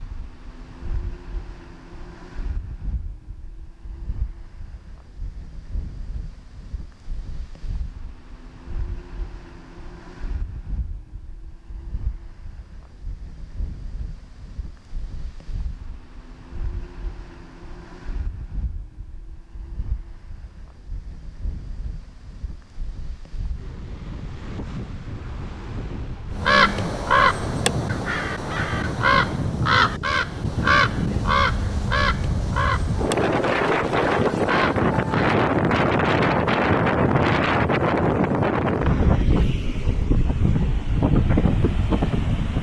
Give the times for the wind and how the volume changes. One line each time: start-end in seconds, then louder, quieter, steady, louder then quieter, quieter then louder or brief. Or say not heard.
0.0-42.5 louder.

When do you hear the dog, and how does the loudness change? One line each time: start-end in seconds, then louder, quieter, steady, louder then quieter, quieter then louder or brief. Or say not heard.
not heard.